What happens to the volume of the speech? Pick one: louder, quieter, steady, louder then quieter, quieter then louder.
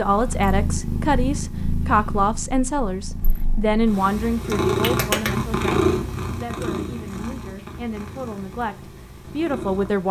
quieter then louder.